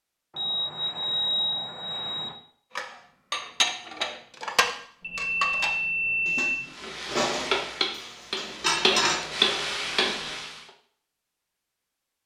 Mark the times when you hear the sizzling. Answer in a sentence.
The sizzling can be heard from 6.7 to 10.7 s.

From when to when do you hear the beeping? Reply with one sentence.
You can hear the beeping from 0.3 to 2.3 s, from 5.0 to 6.5 s and from 9.4 to 10.4 s.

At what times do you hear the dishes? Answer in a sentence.
The dishes can be heard from 2.8 to 9.2 s.